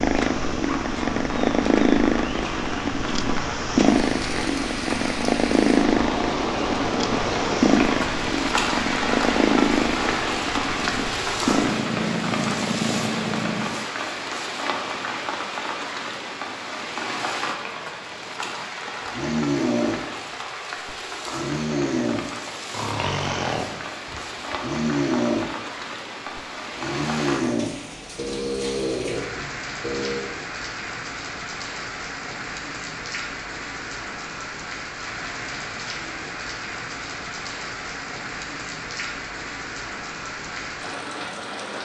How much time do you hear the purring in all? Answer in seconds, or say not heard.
14 s.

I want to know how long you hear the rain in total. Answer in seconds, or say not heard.
42 s.